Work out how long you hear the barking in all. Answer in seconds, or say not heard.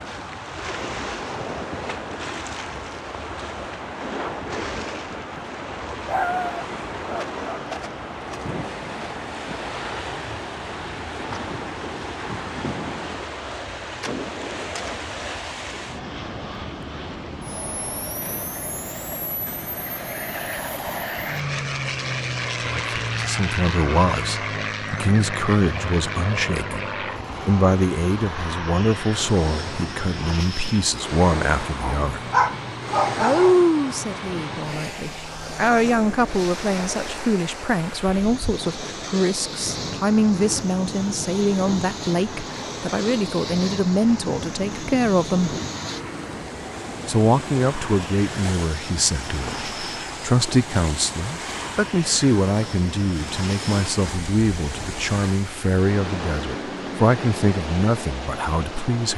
3 s.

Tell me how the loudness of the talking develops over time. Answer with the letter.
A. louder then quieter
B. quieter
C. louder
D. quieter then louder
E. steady
E.